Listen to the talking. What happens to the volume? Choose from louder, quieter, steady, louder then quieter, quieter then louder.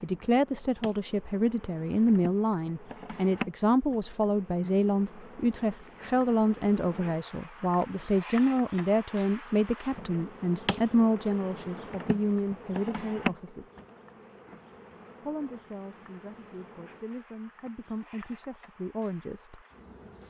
quieter.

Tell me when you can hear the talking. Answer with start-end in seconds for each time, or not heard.
0.0-13.7, 15.2-19.6.